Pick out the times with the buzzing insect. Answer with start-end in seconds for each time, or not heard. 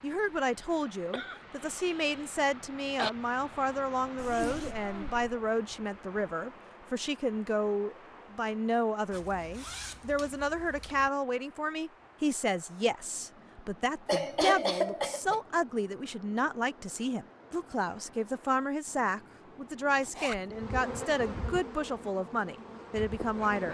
20.4-23.6.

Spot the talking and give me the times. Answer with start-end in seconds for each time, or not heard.
0.0-23.6.